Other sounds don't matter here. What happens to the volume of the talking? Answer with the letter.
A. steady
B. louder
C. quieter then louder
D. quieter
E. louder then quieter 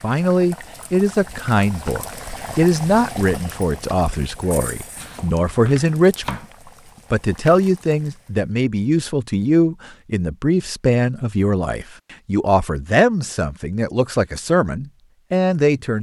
A.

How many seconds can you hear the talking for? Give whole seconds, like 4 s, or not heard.
15 s.